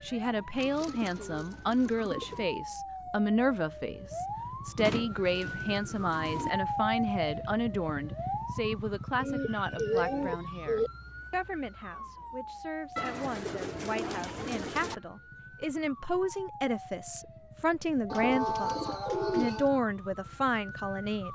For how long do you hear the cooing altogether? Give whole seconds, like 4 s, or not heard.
9 s.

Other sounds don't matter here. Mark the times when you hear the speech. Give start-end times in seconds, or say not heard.
0.0-21.3.